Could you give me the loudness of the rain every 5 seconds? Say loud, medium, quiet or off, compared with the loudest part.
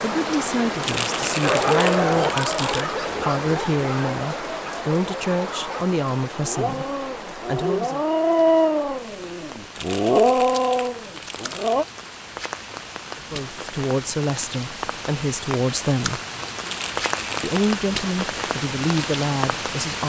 loud, medium, medium, loud.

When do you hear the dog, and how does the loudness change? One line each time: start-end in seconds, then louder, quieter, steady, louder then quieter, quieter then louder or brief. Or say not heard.
1.4-11.8 quieter then louder.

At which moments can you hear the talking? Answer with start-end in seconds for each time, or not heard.
0.0-8.0, 13.3-16.2, 17.4-20.0.